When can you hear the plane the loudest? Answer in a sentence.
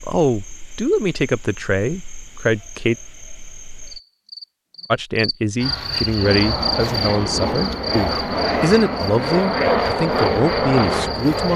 The loudest moment of the plane is at 10 seconds.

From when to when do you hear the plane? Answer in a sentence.
The plane can be heard from 6.2 to 11.5 s.